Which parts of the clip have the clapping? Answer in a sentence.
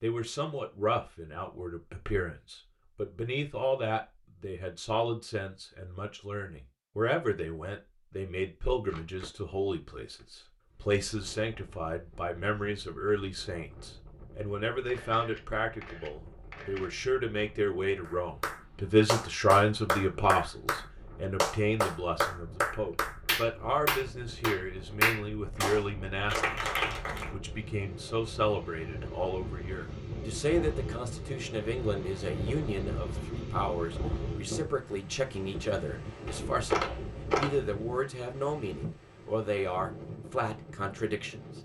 You can hear the clapping from 18.1 to 27.3 s.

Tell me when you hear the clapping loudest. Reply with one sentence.
The volume of the clapping peaks at 25 seconds.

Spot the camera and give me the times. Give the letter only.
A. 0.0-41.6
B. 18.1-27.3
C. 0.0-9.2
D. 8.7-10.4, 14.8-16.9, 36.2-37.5
D.